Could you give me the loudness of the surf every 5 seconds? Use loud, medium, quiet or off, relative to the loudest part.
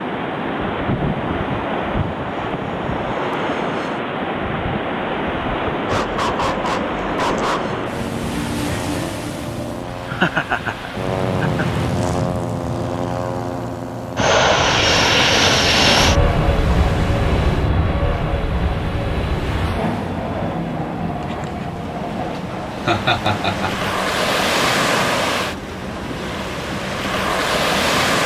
loud, loud, medium, quiet, loud, loud.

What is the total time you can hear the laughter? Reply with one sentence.
You can hear the laughter for 3 seconds altogether.